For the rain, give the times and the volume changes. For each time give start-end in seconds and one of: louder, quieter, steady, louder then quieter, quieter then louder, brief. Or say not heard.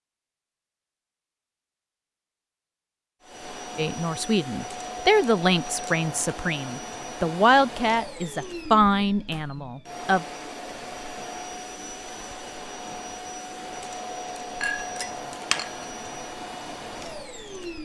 not heard.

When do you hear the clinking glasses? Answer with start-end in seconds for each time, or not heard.
14.6-15.8.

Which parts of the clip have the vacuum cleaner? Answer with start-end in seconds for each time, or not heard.
3.2-17.7.